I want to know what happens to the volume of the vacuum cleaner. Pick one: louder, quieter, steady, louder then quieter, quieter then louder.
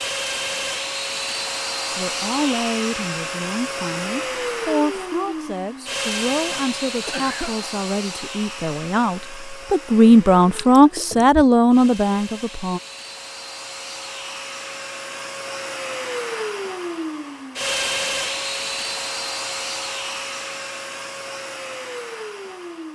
quieter then louder.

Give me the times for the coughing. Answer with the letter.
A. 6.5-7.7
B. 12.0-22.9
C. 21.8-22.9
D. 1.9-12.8
A.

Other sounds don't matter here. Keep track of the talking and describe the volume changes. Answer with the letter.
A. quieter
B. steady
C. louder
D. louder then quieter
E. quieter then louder
C.